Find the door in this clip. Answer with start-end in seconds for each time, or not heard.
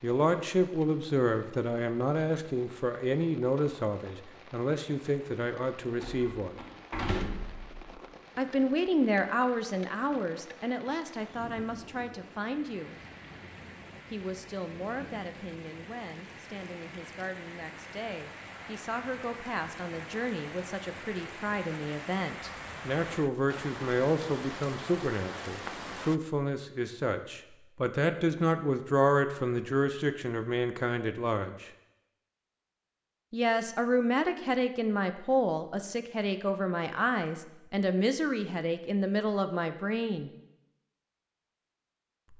6.0-8.0.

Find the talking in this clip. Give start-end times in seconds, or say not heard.
0.0-6.6, 8.3-12.9, 14.1-31.7, 33.3-40.3.